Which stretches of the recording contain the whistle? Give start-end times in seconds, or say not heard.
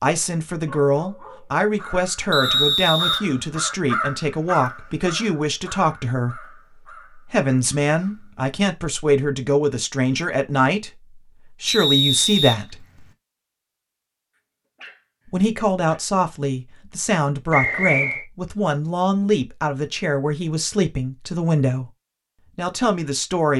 2.3-3.2, 11.7-13.1, 17.5-18.2.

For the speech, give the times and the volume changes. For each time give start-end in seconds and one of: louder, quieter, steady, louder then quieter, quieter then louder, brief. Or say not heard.
0.0-12.8 steady
15.2-21.9 steady
22.6-23.5 brief.